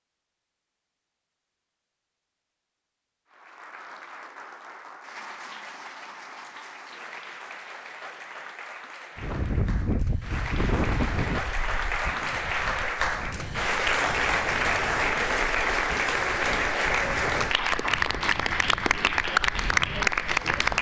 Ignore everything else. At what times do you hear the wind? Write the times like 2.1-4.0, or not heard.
9.2-20.7.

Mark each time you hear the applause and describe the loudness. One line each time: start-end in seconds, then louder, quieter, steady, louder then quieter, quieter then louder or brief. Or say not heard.
3.3-20.7 louder.